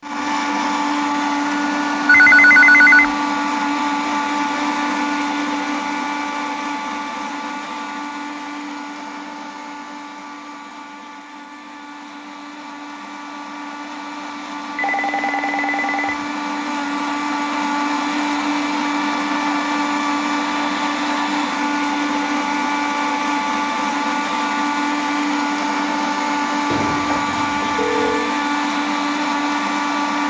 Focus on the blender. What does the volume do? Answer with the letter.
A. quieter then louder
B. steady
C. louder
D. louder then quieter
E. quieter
A.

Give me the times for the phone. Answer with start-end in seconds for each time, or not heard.
2.0-3.1, 14.8-16.2, 26.7-28.4.